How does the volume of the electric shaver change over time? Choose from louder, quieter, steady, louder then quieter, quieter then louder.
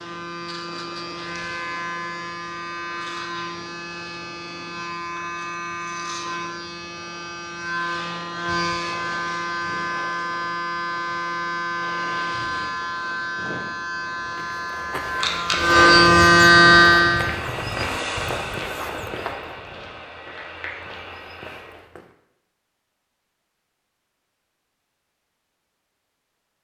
louder.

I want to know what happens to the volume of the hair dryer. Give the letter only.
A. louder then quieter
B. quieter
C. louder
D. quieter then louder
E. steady
B.